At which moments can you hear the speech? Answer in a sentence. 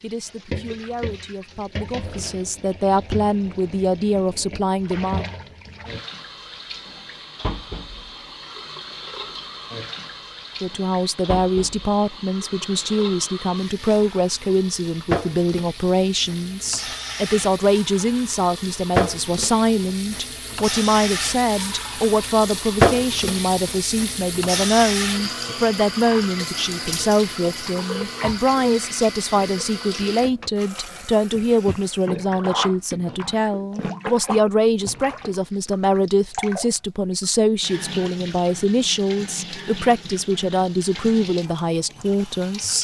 You can hear the speech from 0.0 to 5.2 s and from 10.6 to 42.7 s.